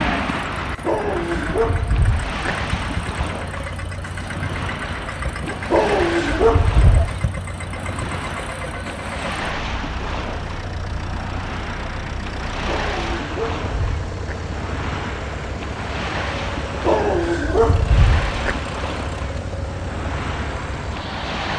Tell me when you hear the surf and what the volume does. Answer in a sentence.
The surf can be heard from 0.0 to 21.5 s, at a steady volume.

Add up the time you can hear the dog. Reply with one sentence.
You can hear the dog for 6 seconds altogether.